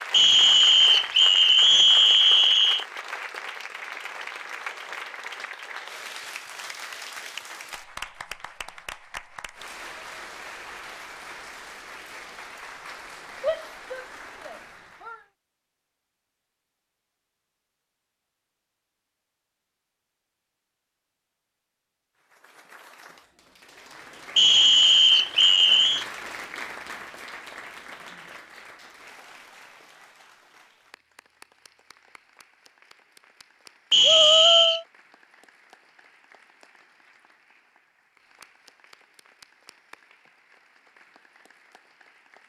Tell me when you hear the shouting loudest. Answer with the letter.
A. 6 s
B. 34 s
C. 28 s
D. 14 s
B.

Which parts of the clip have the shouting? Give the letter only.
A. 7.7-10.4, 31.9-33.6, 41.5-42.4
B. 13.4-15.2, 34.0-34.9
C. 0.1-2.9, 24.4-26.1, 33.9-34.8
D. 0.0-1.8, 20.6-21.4
B.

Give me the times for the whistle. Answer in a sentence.
The whistle can be heard from 0.1 to 2.9 s, from 24.4 to 26.1 s and from 33.9 to 34.8 s.